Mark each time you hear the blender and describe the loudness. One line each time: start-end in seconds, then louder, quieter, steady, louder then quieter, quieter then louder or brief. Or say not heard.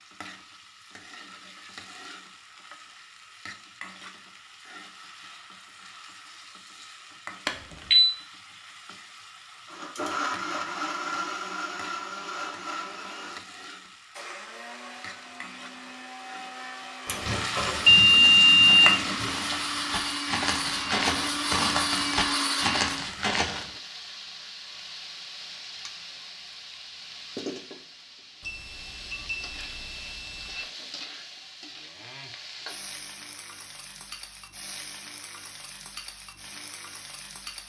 9.7-23.0 quieter then louder.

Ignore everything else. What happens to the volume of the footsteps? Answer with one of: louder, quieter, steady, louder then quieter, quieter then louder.
louder.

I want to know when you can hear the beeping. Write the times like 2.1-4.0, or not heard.
7.5-8.1, 17.1-19.3, 28.4-30.6.